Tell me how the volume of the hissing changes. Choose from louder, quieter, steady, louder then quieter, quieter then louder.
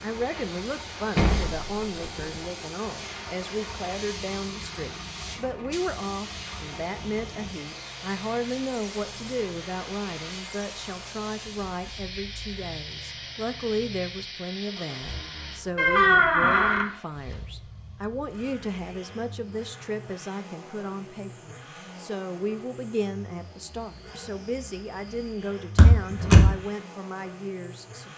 steady.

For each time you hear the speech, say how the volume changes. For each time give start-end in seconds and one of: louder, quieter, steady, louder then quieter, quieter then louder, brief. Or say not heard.
0.0-28.1 steady.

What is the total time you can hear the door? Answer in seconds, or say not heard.
3 s.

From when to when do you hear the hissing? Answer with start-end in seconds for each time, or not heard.
0.0-15.6.